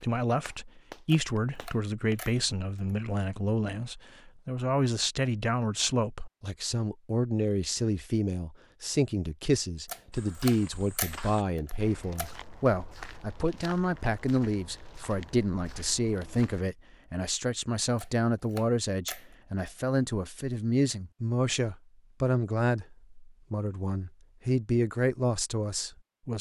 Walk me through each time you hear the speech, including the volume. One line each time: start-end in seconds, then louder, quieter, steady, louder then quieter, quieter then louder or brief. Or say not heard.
0.0-26.3 steady.